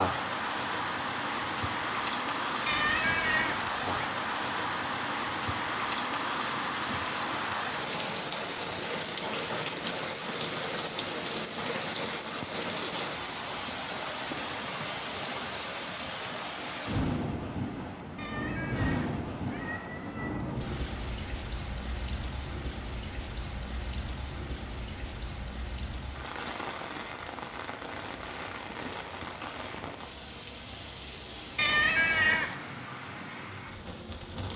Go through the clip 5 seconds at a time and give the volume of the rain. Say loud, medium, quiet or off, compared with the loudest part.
loud, loud, loud, loud, medium, medium, medium.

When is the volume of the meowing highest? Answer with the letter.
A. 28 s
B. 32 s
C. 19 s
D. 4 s
B.